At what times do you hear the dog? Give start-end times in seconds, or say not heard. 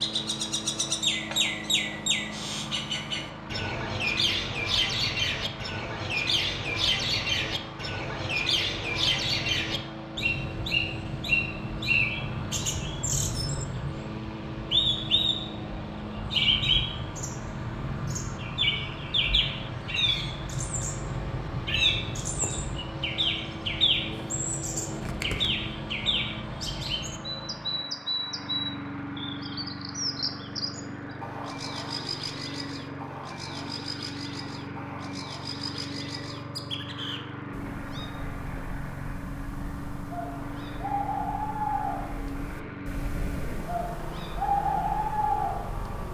not heard.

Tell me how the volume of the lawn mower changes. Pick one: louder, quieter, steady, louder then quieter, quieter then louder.
steady.